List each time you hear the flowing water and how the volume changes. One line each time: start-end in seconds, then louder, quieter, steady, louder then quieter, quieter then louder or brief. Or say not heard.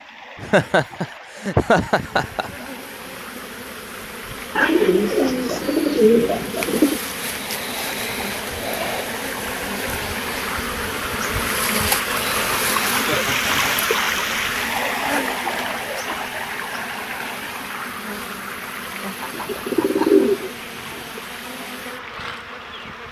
0.0-23.0 louder then quieter.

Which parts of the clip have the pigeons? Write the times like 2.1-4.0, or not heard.
4.5-7.0, 19.3-21.0.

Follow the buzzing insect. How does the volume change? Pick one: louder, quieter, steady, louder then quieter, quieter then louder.
louder then quieter.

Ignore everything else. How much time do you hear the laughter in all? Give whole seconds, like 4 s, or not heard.
4 s.